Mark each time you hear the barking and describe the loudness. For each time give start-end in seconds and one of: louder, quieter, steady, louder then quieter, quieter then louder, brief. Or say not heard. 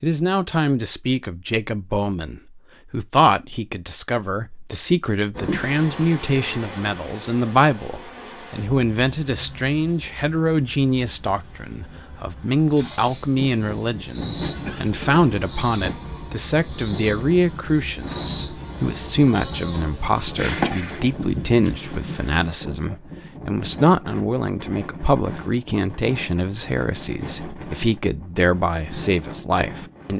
not heard.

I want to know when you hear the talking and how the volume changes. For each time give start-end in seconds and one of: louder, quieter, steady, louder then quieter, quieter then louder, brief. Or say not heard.
0.0-30.1 steady.